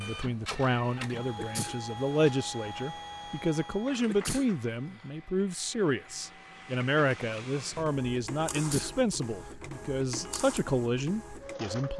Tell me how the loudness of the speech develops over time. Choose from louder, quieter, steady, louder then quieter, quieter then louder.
steady.